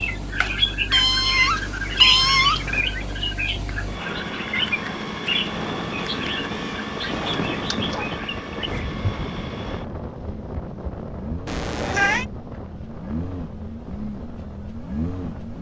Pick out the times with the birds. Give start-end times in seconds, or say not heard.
0.0-8.8.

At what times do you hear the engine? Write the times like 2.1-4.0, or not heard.
0.0-15.5.